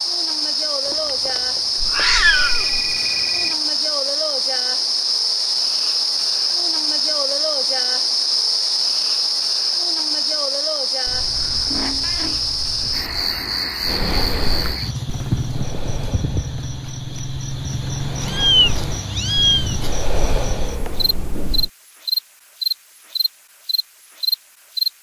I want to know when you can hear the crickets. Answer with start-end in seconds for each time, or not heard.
0.0-24.9.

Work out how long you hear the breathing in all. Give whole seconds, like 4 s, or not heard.
8 s.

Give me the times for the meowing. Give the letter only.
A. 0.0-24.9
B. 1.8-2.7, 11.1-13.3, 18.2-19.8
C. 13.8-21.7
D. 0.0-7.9
B.